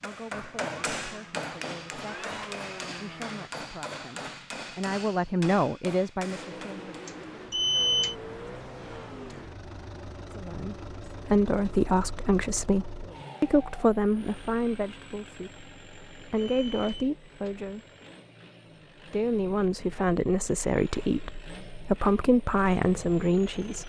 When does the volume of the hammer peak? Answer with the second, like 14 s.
1 s.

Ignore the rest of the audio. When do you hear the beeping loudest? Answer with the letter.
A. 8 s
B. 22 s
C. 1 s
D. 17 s
A.